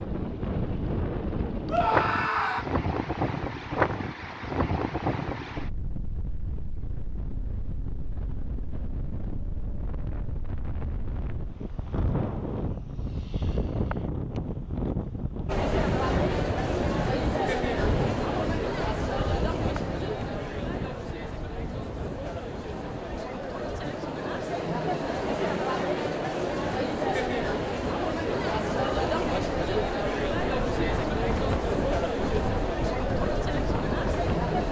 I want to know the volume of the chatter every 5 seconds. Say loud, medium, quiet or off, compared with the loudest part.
off, off, off, loud, medium, loud, loud.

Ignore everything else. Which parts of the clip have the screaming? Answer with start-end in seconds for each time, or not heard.
1.6-2.6.